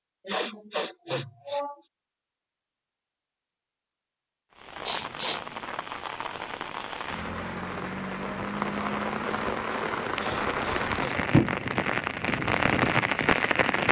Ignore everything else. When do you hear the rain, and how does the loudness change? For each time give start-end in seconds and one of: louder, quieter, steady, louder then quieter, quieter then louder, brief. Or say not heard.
4.5-13.8 louder.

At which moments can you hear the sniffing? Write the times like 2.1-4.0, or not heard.
0.2-1.8, 4.8-5.6, 10.2-11.2.